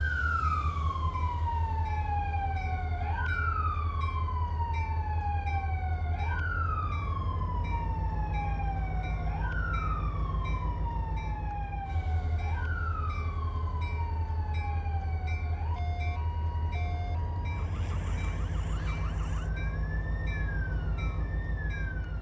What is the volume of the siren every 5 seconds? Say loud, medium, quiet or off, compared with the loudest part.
loud, loud, medium, medium, medium.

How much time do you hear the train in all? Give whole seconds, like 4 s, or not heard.
22 s.